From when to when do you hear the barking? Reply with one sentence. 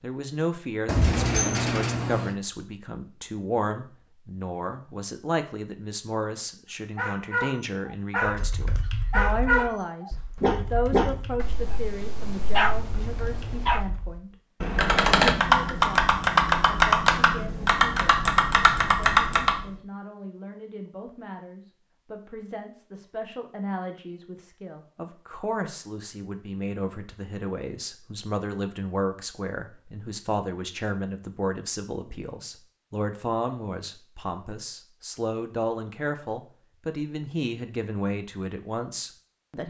You can hear the barking from 7.0 to 13.9 s.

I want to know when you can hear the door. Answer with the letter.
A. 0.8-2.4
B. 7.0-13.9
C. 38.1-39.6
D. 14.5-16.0
A.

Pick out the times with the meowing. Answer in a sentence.
You can't hear the meowing here.